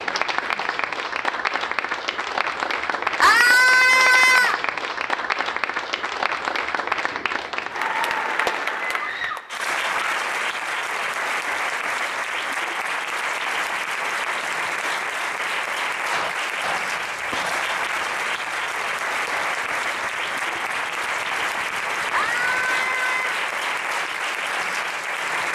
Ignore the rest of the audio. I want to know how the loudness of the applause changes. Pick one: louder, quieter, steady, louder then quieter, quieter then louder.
steady.